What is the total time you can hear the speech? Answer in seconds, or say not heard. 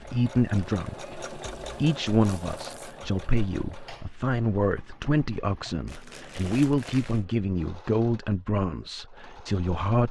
10 s.